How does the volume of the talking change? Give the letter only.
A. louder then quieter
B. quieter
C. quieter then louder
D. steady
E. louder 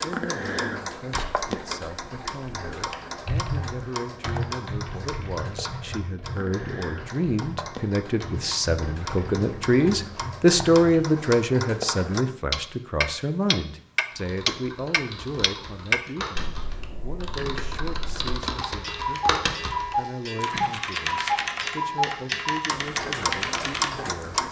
A.